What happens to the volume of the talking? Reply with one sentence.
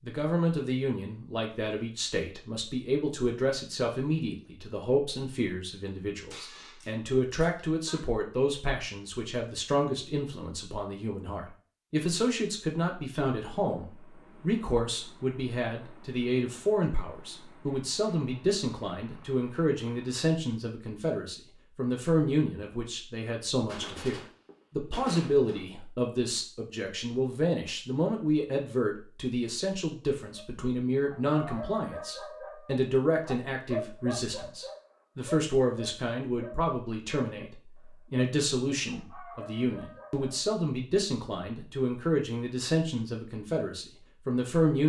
The loudness of the talking stays about the same.